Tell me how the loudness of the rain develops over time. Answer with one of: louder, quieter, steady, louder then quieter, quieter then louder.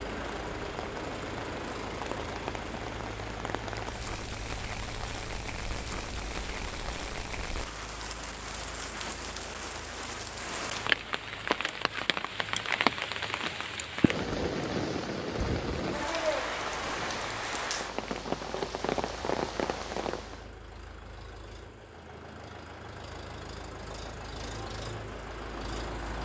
louder.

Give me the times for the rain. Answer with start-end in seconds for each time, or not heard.
0.0-20.5.